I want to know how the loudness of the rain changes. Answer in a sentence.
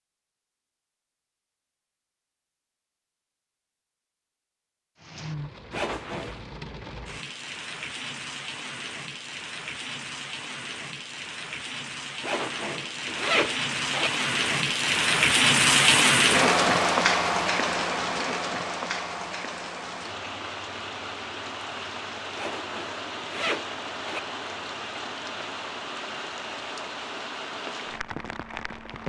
The loudness of the rain goes up, then down.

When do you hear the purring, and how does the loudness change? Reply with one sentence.
The purring can't be heard in this clip.